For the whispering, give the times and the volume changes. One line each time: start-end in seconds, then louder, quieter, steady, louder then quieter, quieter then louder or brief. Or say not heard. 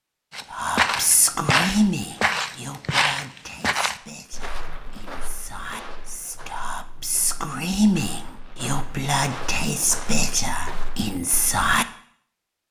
0.5-11.8 quieter then louder.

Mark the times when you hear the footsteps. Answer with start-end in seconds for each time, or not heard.
0.3-11.8.